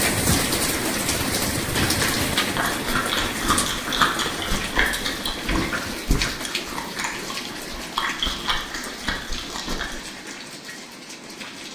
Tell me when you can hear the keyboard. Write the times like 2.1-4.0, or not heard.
not heard.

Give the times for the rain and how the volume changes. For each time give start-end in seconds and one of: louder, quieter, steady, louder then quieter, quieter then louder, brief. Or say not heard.
0.0-11.7 quieter.